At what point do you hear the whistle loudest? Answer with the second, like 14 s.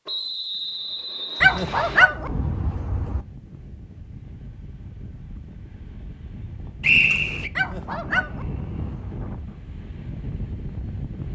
7 s.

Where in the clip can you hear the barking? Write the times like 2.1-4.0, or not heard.
1.4-3.2, 7.5-9.2.